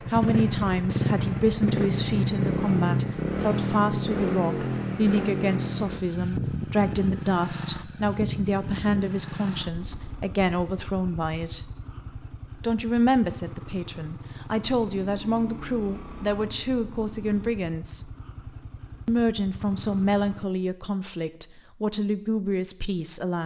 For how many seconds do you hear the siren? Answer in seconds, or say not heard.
not heard.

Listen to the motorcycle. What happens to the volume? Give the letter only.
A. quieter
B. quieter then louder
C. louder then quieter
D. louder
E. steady
A.